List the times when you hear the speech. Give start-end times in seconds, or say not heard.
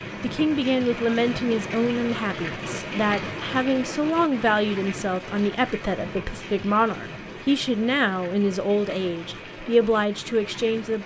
0.2-11.0.